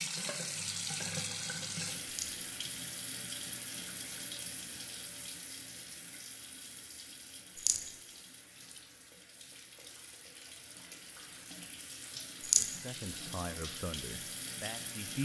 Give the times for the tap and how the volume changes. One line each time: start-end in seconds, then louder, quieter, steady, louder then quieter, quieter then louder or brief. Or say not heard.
0.0-15.2 quieter then louder.